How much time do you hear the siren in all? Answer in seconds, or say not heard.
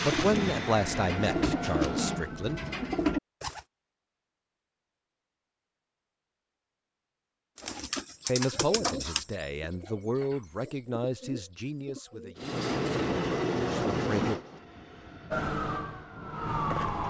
2 s.